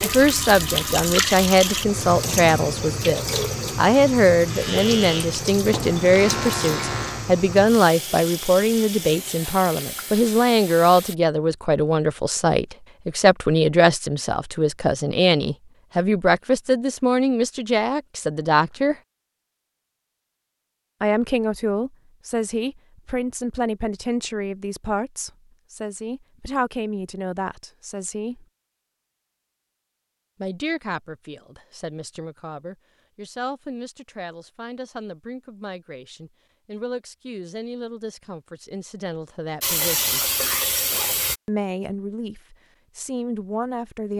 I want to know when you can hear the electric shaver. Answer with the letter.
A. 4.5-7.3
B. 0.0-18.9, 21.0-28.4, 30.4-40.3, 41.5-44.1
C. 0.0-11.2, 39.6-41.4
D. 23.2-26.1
A.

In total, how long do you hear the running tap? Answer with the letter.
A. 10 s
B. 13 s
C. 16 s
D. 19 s
B.